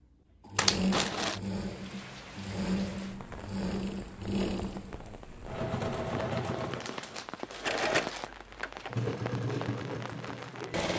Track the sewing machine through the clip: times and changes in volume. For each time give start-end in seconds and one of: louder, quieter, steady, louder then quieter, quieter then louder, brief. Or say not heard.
0.4-10.9 steady.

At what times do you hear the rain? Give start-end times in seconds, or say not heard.
1.5-10.9.